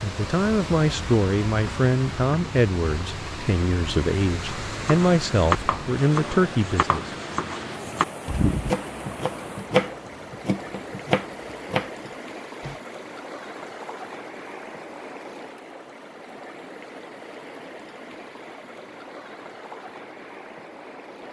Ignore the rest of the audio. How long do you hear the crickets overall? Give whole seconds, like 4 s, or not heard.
not heard.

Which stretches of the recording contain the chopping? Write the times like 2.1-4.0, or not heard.
4.5-12.8.